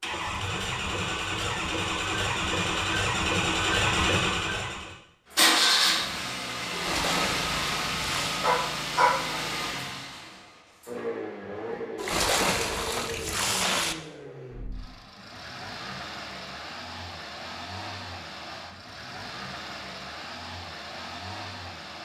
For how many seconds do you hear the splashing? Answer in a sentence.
The splashing can be heard for 4 seconds in total.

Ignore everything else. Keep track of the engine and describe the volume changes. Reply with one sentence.
The loudness of the engine goes down.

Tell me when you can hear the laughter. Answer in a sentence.
You can't hear the laughter here.